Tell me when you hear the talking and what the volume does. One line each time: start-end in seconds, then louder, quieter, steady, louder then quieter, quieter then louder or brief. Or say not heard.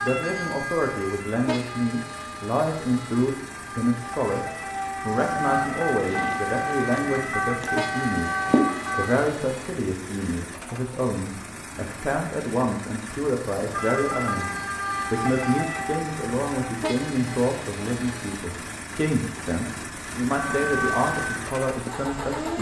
0.0-22.5 steady.